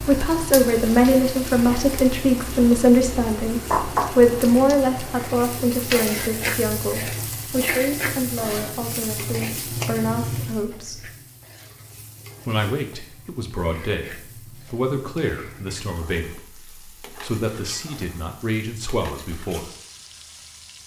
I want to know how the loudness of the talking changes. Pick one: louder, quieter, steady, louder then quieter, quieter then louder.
quieter.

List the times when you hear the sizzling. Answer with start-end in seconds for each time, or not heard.
0.0-20.8.